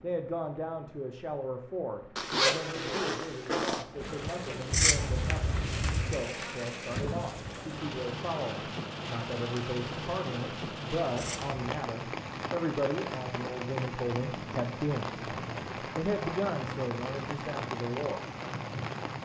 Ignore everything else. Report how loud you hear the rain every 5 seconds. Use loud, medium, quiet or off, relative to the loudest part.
medium, loud, loud, loud.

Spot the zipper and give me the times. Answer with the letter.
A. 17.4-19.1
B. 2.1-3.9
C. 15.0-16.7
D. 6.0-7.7
B.